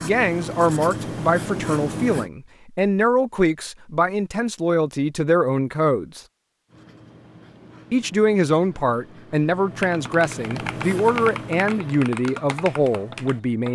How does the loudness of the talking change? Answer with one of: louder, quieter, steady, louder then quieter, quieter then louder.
steady.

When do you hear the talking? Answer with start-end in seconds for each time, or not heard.
0.0-6.2, 7.9-13.7.